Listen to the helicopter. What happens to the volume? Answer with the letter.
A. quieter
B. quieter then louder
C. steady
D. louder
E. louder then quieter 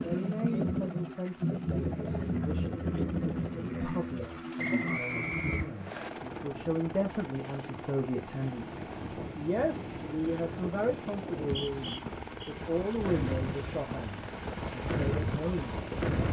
A.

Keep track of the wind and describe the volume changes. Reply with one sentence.
The loudness of the wind goes up.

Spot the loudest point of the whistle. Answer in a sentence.
The loudest moment of the whistle is at 5 seconds.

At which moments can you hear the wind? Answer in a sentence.
The wind can be heard from 6.4 to 16.2 s.